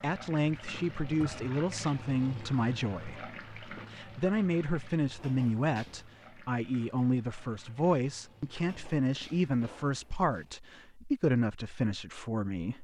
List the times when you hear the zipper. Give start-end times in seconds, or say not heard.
not heard.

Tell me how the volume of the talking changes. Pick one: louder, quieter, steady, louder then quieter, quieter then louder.
steady.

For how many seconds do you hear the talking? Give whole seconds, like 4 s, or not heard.
13 s.